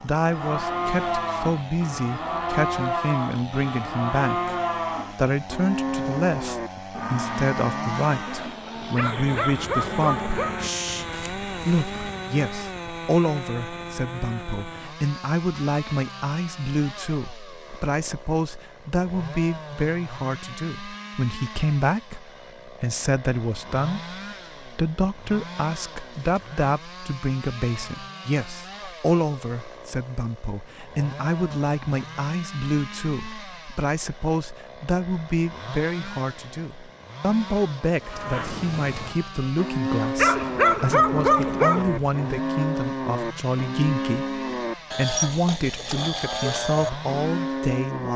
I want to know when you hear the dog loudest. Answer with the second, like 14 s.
41 s.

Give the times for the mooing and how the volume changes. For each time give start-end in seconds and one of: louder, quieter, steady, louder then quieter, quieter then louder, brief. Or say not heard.
0.0-12.2 quieter
38.0-48.1 steady.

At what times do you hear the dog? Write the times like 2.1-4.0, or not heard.
8.9-10.6, 40.1-42.0.